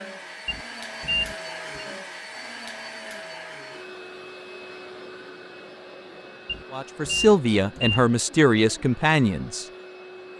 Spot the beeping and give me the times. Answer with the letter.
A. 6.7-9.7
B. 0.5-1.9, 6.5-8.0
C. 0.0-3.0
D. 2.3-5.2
B.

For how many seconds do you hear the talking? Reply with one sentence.
You can hear the talking for 3 seconds altogether.